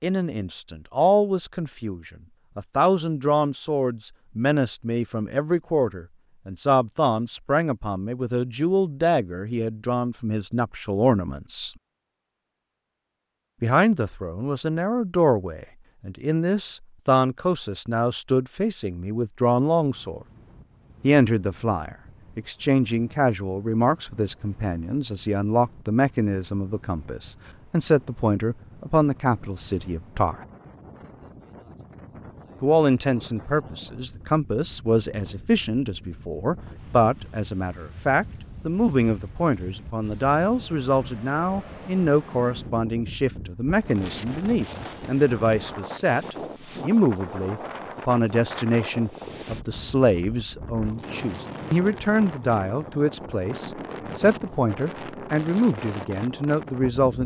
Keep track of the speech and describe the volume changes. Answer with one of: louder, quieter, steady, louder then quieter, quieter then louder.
steady.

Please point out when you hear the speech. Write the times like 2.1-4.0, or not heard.
0.0-11.7, 13.6-20.2, 21.0-30.4, 32.6-57.2.